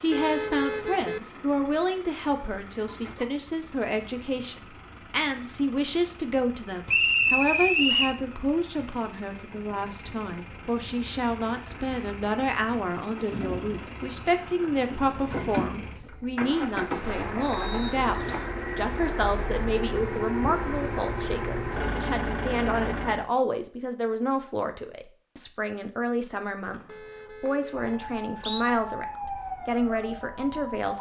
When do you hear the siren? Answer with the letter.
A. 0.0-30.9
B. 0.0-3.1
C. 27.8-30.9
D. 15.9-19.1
C.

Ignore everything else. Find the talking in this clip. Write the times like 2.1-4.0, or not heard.
0.0-30.9.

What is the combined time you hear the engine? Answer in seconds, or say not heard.
23 s.